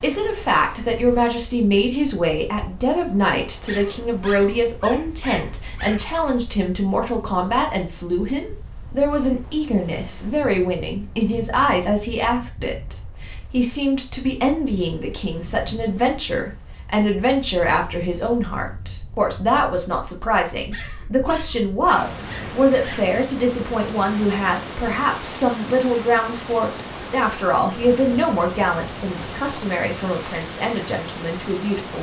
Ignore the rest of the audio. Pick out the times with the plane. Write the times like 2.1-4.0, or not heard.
not heard.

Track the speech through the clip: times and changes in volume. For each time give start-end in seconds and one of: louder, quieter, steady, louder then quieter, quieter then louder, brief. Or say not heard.
0.0-31.9 steady.